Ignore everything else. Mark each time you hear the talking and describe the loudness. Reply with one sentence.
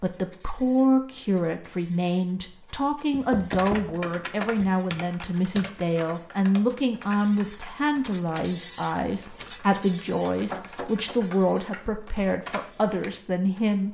You can hear the talking from 0.0 to 13.8 s, at a steady volume.